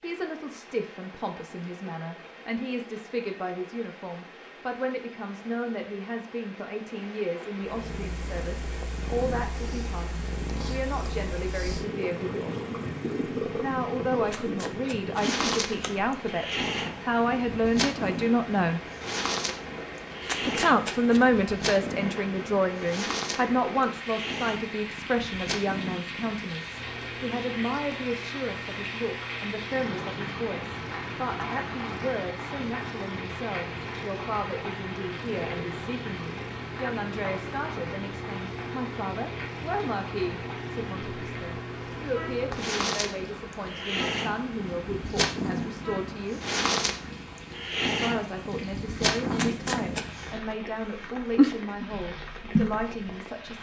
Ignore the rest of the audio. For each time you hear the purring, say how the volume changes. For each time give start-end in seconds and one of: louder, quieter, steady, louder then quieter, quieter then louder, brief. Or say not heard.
7.7-53.5 quieter then louder.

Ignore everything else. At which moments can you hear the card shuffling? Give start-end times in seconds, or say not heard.
14.2-15.9, 20.2-21.2, 49.3-50.1.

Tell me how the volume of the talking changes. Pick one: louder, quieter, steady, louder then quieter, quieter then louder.
louder then quieter.